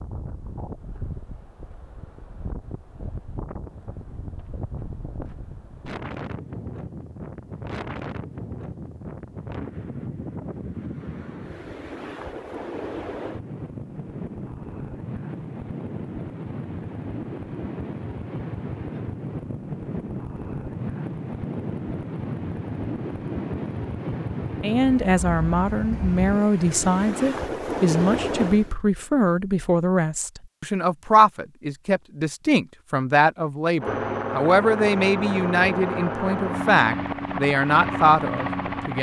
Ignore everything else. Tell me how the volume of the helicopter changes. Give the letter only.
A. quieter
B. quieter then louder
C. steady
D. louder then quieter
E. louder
C.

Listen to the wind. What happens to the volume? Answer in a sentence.
The loudness of the wind goes up.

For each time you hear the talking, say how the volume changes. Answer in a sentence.
The talking can be heard from 24.6 to 38.9 s, at a steady volume.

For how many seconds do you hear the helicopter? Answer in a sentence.
You can hear the helicopter for 5 seconds altogether.